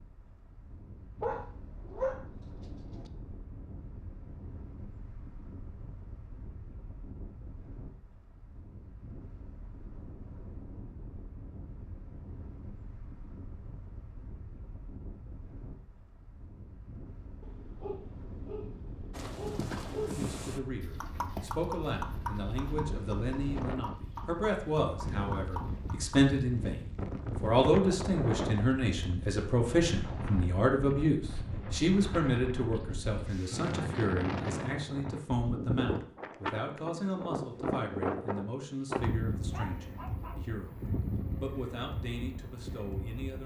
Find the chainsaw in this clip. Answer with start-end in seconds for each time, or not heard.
not heard.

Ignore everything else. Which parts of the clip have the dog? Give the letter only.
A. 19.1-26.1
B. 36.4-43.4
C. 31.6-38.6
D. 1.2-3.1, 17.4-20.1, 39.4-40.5
D.